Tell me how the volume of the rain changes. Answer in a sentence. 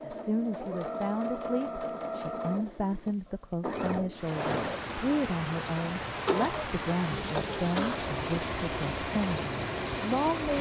The loudness of the rain stays about the same.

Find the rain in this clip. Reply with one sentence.
The rain can be heard from 4.2 to 10.5 s.